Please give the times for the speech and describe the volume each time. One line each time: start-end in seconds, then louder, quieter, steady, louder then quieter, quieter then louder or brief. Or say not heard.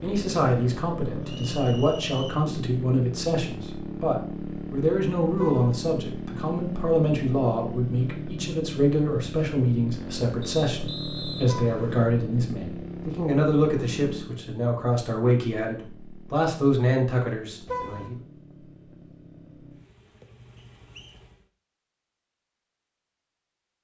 0.0-18.2 steady.